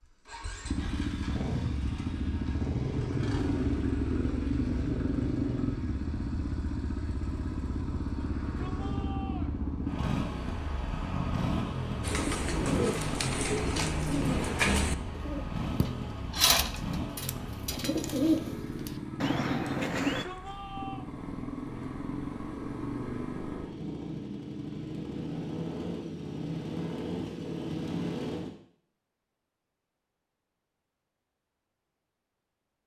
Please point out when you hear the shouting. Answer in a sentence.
You can hear the shouting from 8.2 to 9.6 s and from 20.1 to 21.1 s.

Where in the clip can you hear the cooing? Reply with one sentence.
You can hear the cooing from 12.0 to 20.2 s.